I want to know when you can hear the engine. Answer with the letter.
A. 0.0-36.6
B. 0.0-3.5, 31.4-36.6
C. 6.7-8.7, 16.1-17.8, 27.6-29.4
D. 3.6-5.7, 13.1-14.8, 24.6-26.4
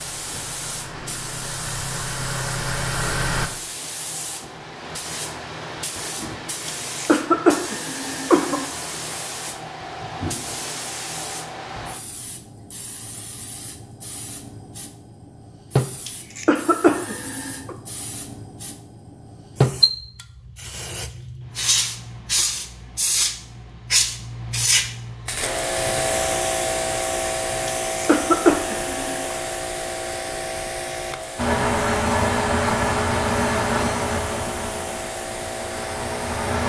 B.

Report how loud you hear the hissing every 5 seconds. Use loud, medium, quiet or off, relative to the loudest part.
medium, medium, medium, loud, loud, loud, medium, medium.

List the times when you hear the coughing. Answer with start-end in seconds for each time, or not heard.
6.7-8.7, 16.1-17.8, 27.6-29.4.